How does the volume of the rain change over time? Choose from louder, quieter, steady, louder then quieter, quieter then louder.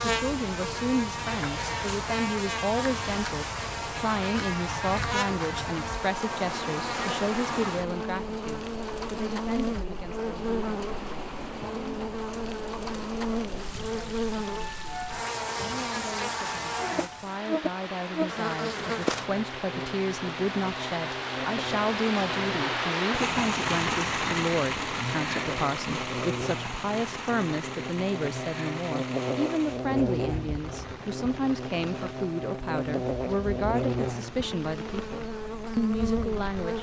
louder then quieter.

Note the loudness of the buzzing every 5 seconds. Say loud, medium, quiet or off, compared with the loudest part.
loud, loud, loud, loud, medium, loud, loud, loud.